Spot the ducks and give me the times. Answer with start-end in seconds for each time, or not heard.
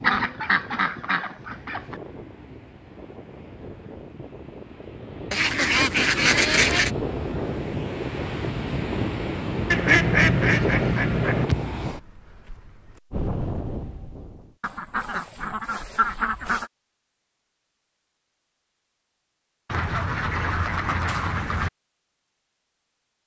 0.0-1.9, 5.3-6.9, 9.7-11.4, 14.6-16.7, 19.6-21.7.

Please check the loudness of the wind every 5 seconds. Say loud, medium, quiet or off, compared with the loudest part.
quiet, loud, loud, off, off.